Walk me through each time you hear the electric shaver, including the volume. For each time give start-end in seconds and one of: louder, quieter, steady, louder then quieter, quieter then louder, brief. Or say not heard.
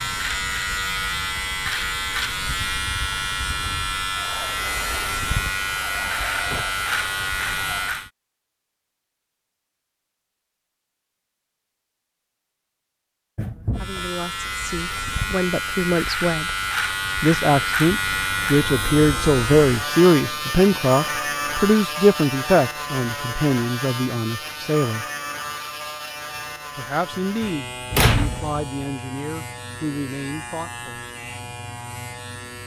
0.0-8.1 steady
13.8-32.6 quieter.